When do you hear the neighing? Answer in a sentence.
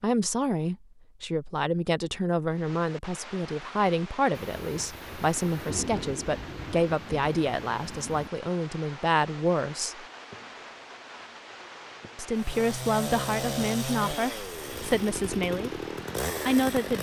The neighing can't be heard in this clip.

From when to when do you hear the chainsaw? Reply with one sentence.
You can hear the chainsaw from 12.3 to 16.9 s.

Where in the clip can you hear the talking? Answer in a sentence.
The talking can be heard from 0.0 to 10.1 s, from 12.2 to 15.8 s and from 16.4 to 16.9 s.